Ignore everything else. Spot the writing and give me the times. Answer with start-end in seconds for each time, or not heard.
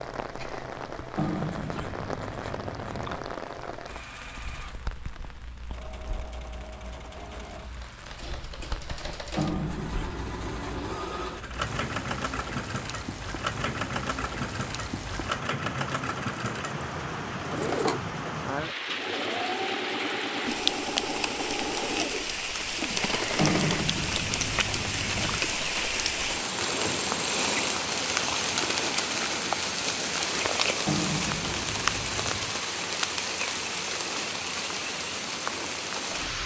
1.1-3.2, 9.3-11.1, 23.4-25.4, 30.9-32.6.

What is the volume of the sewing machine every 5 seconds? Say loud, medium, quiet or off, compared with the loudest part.
quiet, medium, loud, loud, loud, off, off, off.